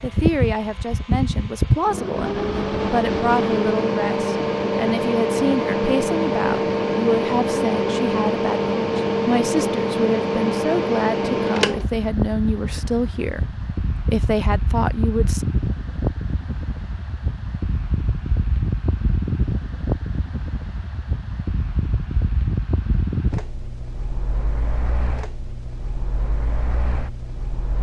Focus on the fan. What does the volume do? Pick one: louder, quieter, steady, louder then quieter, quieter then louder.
quieter.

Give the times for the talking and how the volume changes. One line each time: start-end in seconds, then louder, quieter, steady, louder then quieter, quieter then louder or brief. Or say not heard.
0.0-15.4 steady.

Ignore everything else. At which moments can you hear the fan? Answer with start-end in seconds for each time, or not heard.
0.0-27.7.